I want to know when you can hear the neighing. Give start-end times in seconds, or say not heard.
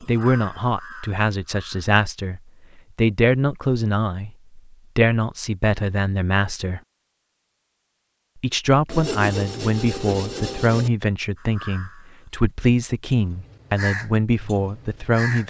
not heard.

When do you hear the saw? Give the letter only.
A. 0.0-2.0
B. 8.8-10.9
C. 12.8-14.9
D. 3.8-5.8
B.